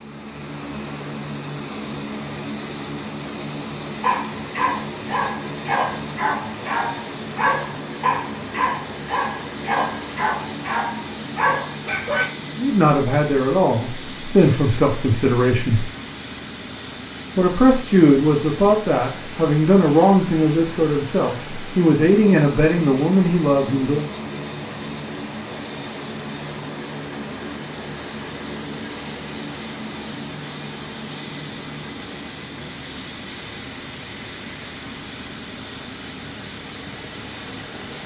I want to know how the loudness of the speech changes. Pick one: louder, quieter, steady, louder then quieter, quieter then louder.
steady.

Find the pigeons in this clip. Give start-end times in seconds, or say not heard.
not heard.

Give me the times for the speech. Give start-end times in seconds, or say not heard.
12.6-15.8, 17.4-24.1.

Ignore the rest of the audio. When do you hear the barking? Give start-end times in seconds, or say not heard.
4.0-12.2.